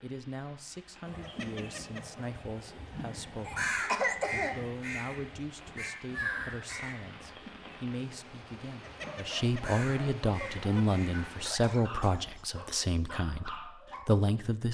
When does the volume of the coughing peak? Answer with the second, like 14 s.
4 s.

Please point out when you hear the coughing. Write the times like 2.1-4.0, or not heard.
3.5-4.5, 11.4-12.6.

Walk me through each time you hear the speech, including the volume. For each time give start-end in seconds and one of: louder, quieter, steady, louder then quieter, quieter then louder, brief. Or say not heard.
0.0-14.7 louder.